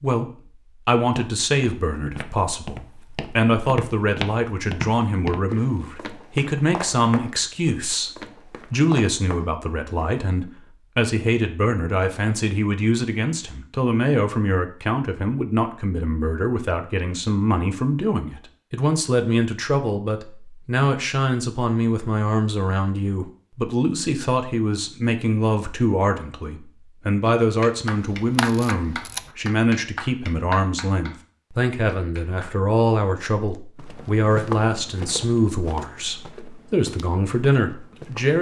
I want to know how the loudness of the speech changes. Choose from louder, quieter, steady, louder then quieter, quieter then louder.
steady.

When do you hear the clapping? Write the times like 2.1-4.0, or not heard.
27.4-32.5.